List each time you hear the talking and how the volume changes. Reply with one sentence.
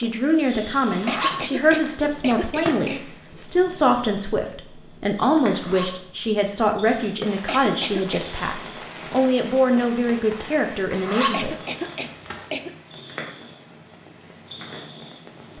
The talking can be heard from 0.0 to 11.5 s, at a steady volume.